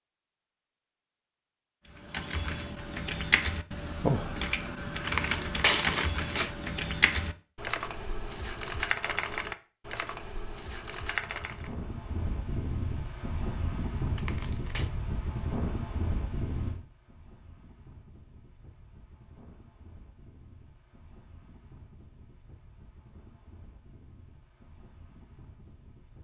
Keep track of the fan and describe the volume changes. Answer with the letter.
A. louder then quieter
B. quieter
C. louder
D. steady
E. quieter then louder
B.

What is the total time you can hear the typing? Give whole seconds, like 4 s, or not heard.
10 s.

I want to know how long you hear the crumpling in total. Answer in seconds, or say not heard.
2 s.